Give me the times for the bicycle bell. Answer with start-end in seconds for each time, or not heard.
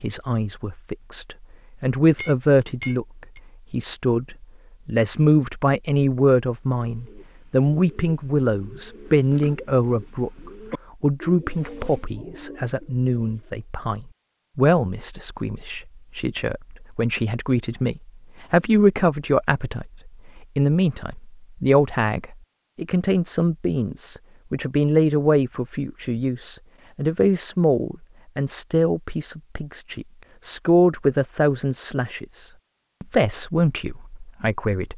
1.9-3.4.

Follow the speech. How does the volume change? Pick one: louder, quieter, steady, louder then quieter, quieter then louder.
steady.